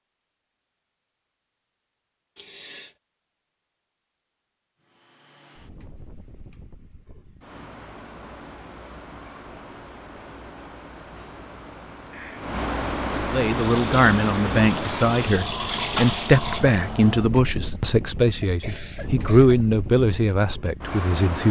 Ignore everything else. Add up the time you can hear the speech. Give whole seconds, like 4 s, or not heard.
8 s.